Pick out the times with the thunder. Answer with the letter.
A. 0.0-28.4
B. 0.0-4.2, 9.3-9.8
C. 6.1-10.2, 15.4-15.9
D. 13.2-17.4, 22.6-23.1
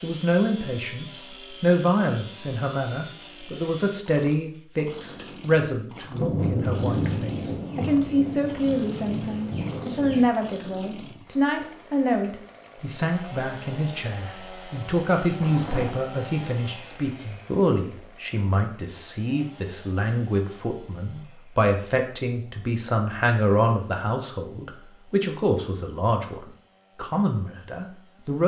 C.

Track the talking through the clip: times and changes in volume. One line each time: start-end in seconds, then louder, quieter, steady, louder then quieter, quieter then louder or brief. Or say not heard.
0.0-28.4 steady.